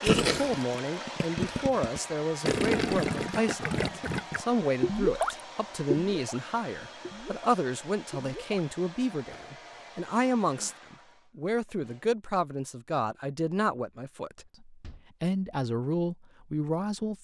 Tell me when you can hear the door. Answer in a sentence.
The door can be heard from 14.3 to 15.1 s.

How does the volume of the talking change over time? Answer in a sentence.
The volume of the talking stays about the same.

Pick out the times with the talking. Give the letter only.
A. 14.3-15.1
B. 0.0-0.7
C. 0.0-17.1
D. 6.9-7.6
C.